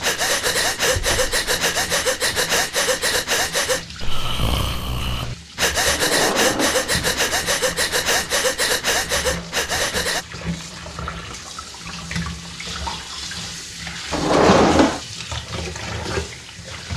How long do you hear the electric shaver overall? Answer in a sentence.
The electric shaver can't be heard in this clip.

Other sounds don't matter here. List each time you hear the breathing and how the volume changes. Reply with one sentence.
You can hear the breathing from 0.0 to 10.2 s, at a steady volume.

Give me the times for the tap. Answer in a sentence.
You can hear the tap from 0.0 to 16.9 s.